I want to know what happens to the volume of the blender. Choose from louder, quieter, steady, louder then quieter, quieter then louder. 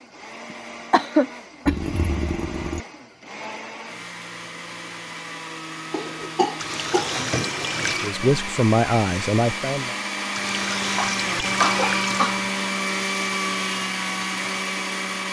louder.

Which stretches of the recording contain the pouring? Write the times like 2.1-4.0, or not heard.
1.6-2.9, 6.5-8.2, 10.3-12.3.